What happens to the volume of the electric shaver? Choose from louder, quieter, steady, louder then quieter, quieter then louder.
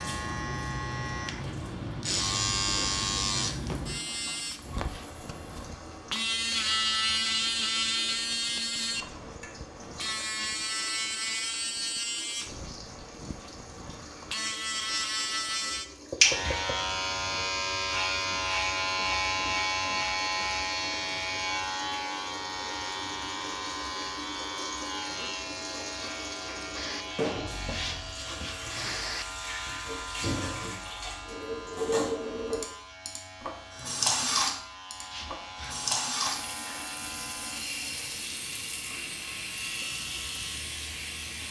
quieter.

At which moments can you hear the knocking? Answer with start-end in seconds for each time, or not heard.
16.1-16.8.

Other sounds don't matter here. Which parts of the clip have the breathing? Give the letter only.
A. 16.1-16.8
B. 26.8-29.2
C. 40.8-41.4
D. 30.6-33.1
B.